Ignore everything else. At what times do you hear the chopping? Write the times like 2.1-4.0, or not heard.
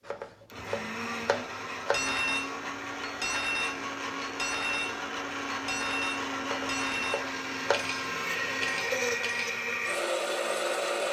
0.1-2.0, 6.5-7.9.